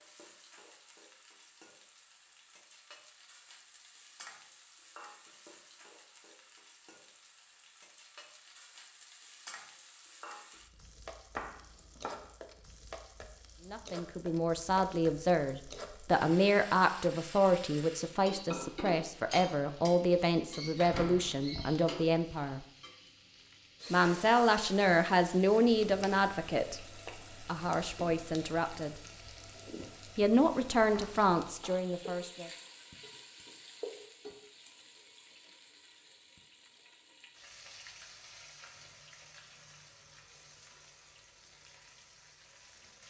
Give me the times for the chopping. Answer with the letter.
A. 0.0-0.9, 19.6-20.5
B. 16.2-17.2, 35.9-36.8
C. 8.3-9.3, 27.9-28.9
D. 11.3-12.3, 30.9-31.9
D.